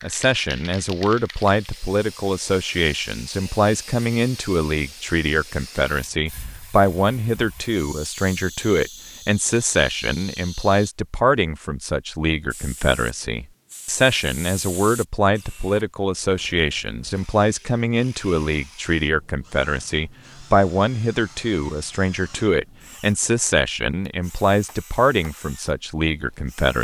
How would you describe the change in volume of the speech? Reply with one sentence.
The volume of the speech stays about the same.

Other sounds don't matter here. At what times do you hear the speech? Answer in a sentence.
You can hear the speech from 0.0 to 26.7 s.